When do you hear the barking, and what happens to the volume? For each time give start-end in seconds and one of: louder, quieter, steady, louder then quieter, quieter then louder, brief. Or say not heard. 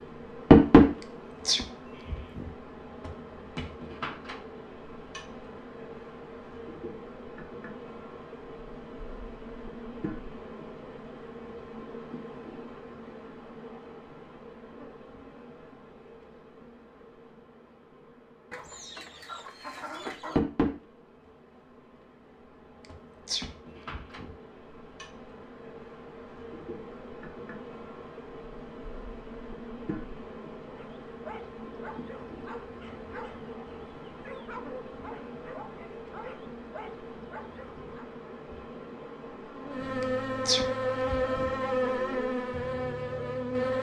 30.7-38.1 steady.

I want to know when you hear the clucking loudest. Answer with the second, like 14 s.
20 s.